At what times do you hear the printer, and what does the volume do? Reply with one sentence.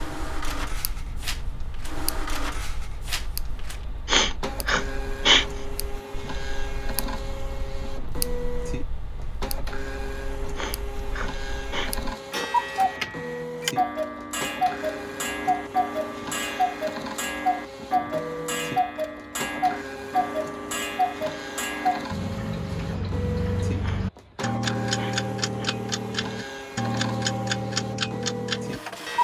You can hear the printer from 0.0 to 29.1 s, at a steady volume.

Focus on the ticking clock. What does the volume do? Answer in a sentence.
The loudness of the ticking clock goes up.